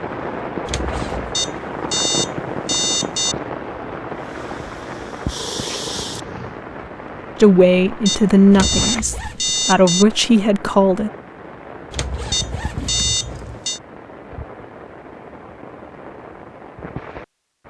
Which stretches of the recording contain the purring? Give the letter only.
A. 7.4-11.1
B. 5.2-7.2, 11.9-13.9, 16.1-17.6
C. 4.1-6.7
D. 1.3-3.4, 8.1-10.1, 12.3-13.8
C.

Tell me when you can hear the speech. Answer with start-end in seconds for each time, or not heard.
7.4-11.1.